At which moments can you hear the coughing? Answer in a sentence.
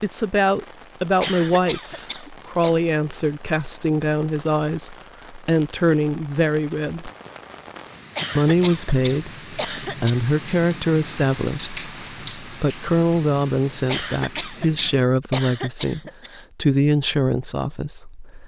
You can hear the coughing from 1.2 to 2.7 s, from 8.2 to 10.2 s and from 13.8 to 16.4 s.